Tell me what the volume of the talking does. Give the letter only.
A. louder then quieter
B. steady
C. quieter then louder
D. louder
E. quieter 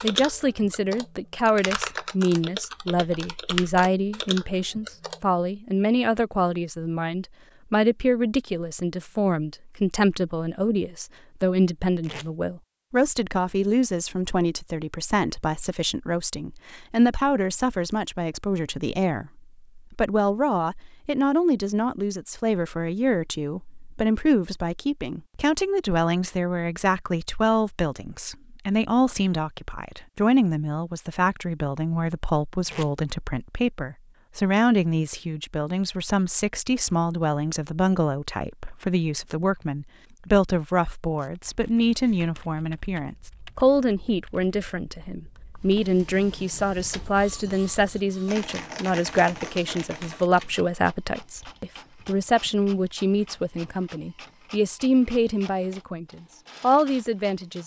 B.